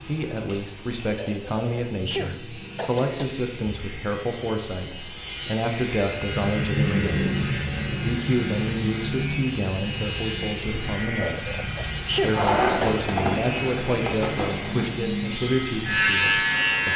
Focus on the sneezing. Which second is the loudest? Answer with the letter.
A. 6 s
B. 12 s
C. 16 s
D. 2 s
B.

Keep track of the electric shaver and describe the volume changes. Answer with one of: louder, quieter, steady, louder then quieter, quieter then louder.
louder.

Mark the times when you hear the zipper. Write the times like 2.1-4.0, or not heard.
12.3-14.9.